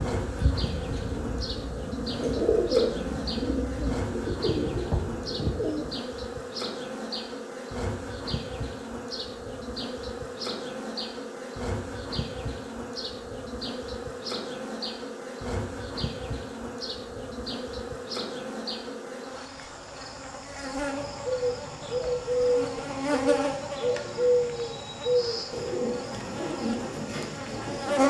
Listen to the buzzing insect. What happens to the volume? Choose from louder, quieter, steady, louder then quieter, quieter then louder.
steady.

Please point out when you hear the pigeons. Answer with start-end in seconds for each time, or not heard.
0.0-6.0, 20.9-28.0.